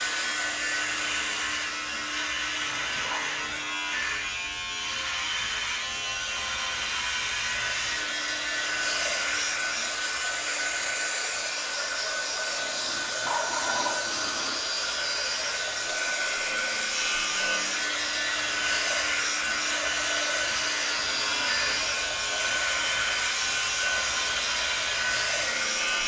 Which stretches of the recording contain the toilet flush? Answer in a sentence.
The toilet flush can be heard from 2.6 to 3.8 s, from 12.6 to 14.6 s and from 21.1 to 21.9 s.